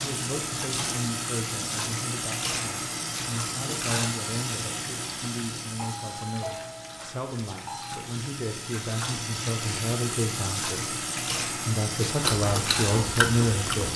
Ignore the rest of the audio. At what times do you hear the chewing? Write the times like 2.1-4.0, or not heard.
12.2-13.9.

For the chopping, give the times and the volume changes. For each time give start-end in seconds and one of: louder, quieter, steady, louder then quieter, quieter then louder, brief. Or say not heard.
not heard.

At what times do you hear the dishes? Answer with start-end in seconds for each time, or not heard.
not heard.